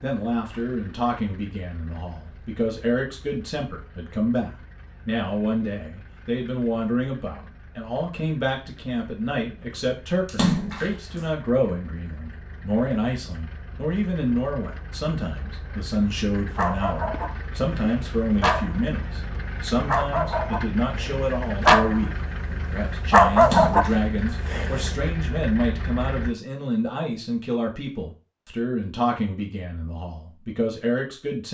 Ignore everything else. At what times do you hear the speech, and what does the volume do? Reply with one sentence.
The speech can be heard from 0.0 to 31.4 s, at a steady volume.